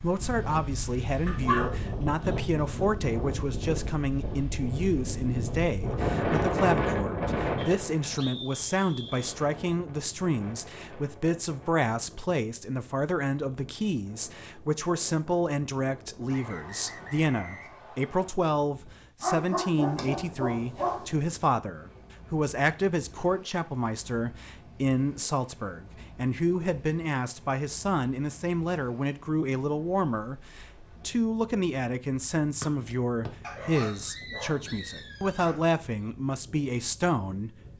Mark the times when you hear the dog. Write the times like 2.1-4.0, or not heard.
1.2-2.9, 19.2-21.1, 33.4-35.6.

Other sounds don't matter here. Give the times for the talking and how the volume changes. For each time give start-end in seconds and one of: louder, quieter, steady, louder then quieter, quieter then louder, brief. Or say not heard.
0.0-37.5 steady.